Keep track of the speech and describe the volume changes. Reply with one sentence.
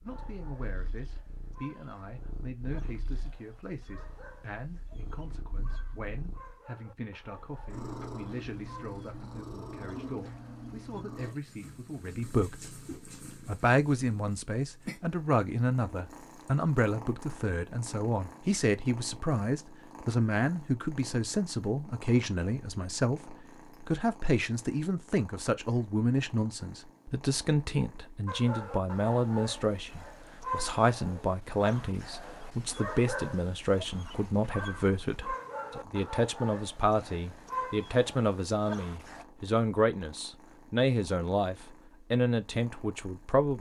The loudness of the speech goes up.